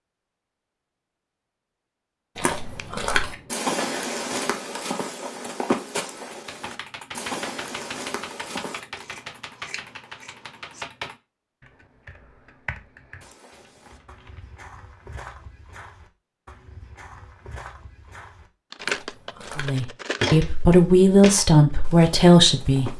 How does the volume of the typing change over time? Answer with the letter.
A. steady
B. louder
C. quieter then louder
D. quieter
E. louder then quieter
C.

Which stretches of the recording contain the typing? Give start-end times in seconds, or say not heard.
6.3-14.4.